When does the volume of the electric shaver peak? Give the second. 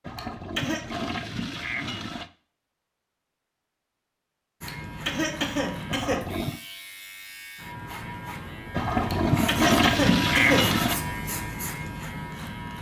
11 s.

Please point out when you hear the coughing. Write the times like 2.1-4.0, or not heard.
0.1-0.8, 4.7-6.2, 9.1-10.8.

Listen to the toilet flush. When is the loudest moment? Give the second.
10 s.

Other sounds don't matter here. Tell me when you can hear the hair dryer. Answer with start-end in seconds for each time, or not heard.
not heard.